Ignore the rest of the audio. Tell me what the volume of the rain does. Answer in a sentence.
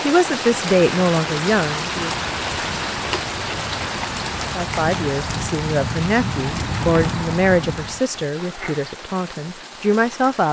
The loudness of the rain goes down.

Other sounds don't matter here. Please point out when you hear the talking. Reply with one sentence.
You can hear the talking from 0.1 to 2.1 s and from 4.5 to 10.4 s.